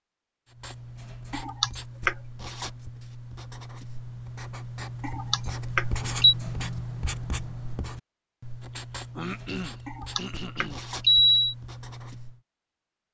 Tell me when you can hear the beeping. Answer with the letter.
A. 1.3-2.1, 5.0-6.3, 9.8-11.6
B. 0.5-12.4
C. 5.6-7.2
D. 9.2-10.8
A.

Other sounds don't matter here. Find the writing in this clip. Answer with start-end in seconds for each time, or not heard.
0.5-12.4.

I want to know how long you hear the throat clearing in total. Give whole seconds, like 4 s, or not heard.
2 s.